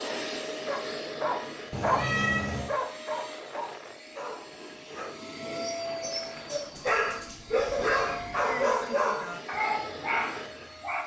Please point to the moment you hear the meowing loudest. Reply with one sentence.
The volume of the meowing peaks at 2 seconds.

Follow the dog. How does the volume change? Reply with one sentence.
The volume of the dog goes down, then up.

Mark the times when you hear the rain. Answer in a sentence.
You can't hear the rain here.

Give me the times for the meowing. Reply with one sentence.
The meowing can be heard from 1.7 to 2.7 s and from 7.7 to 8.2 s.